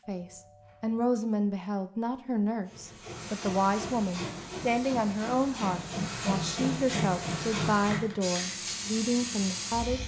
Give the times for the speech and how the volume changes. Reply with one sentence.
You can hear the speech from 0.1 to 10.0 s, at a steady volume.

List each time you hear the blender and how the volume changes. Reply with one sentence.
The blender can't be heard in this clip.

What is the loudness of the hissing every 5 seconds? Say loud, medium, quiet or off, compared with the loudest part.
medium, loud.